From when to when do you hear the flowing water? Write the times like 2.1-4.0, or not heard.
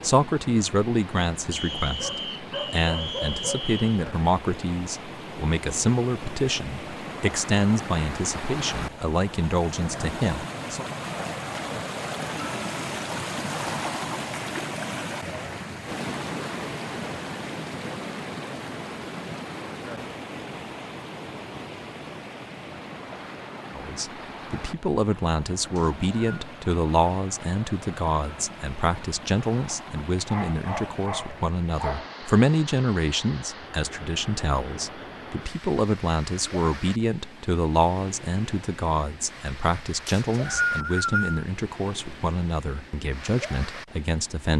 0.0-44.5.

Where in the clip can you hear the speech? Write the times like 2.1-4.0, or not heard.
0.0-10.8, 23.8-44.5.